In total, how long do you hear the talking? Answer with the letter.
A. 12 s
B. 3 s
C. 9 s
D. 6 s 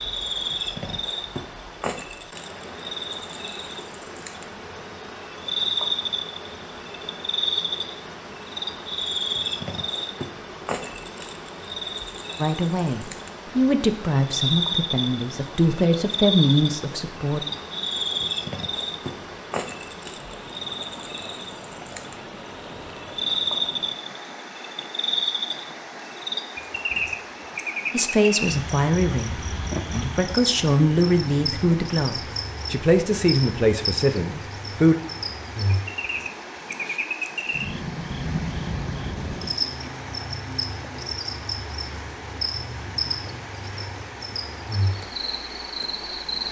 A.